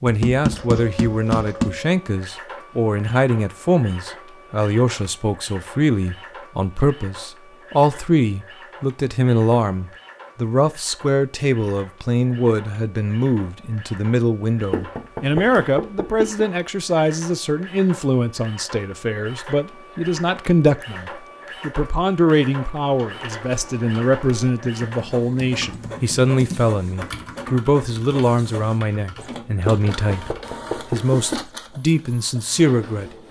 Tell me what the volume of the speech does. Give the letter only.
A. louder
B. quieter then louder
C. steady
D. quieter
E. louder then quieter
C.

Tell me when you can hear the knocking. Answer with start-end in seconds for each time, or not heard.
0.1-1.8, 14.7-16.4, 29.6-31.4.